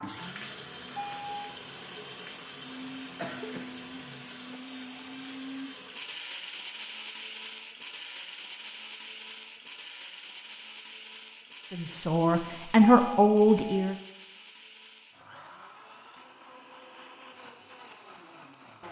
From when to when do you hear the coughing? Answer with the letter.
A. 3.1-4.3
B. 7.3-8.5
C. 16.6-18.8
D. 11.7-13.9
A.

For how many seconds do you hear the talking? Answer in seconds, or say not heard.
2 s.